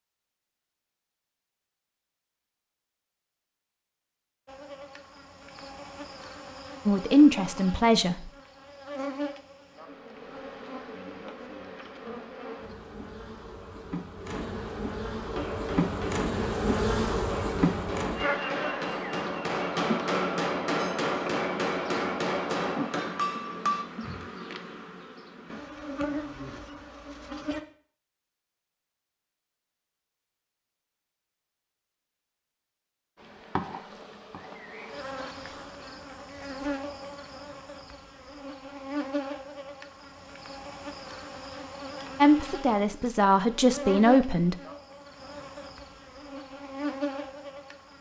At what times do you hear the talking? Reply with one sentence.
You can hear the talking from 6.8 to 8.3 s and from 42.1 to 44.5 s.